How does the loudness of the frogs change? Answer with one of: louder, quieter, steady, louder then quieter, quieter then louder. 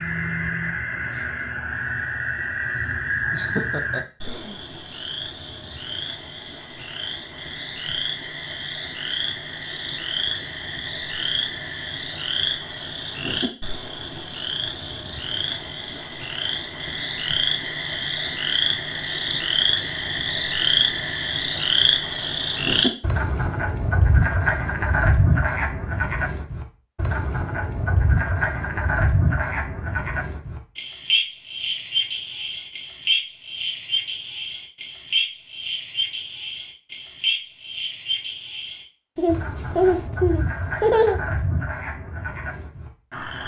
louder then quieter.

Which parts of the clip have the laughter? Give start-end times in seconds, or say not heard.
3.3-4.5, 39.1-41.1.